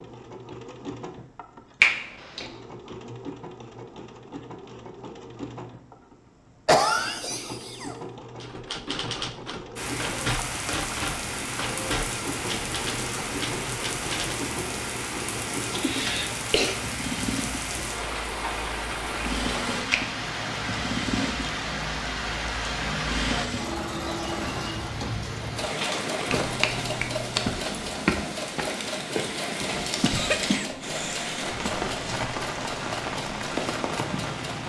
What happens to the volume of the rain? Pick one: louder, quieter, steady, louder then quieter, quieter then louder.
steady.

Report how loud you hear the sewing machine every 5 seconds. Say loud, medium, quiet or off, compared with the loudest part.
medium, medium, medium, loud, loud, loud, medium.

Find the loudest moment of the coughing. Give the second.
7 s.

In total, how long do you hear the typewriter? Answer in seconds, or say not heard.
6 s.